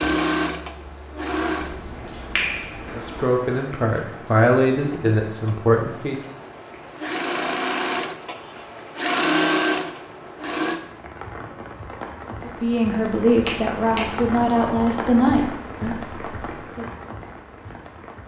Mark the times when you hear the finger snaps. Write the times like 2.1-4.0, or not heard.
1.6-3.2, 13.4-14.1.